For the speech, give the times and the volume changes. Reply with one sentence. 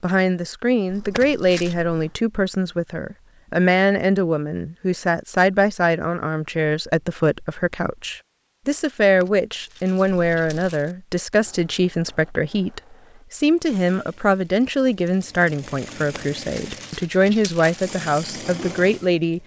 You can hear the speech from 0.0 to 19.4 s, at a steady volume.